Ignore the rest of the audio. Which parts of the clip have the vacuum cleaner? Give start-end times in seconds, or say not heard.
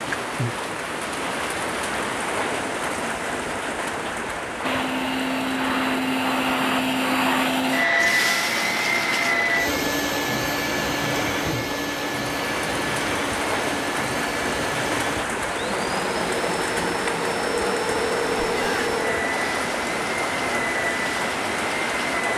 4.6-22.3.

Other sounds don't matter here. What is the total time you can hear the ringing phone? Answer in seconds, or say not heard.
2 s.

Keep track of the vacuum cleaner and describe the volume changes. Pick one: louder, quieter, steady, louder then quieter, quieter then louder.
quieter.